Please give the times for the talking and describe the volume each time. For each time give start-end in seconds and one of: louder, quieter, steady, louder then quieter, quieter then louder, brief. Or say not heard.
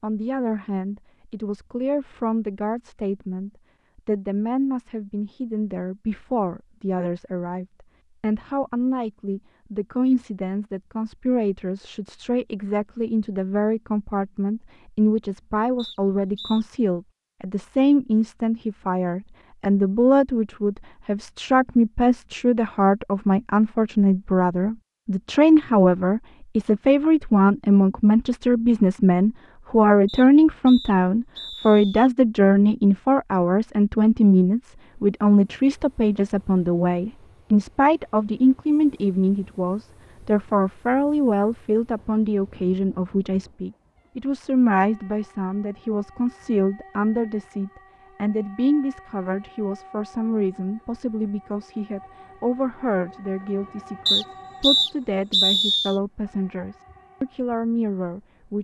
0.0-58.6 louder then quieter.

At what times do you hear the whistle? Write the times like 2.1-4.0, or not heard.
15.8-16.6, 30.1-32.1, 54.0-56.0.